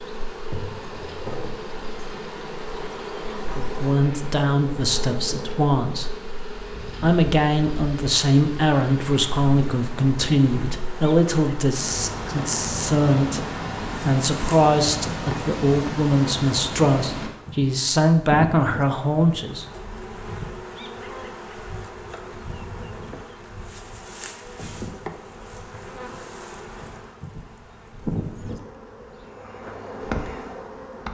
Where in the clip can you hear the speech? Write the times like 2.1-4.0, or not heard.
3.5-6.1, 7.0-13.4, 14.1-19.6.